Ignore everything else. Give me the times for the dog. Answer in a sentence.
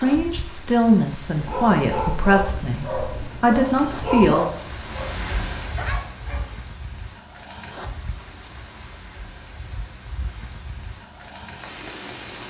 You can hear the dog from 1.2 to 6.5 s.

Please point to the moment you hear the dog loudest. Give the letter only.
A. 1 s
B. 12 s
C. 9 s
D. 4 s
D.